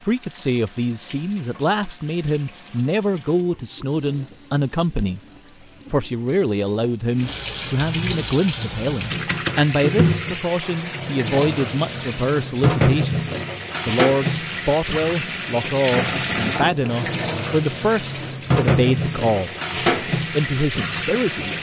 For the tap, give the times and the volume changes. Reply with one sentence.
You can hear the tap from 0.0 to 21.5 s, getting louder.